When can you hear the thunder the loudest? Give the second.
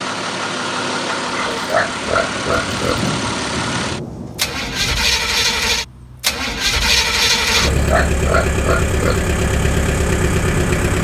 3 s.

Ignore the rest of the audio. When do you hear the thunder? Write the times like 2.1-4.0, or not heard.
2.5-5.0.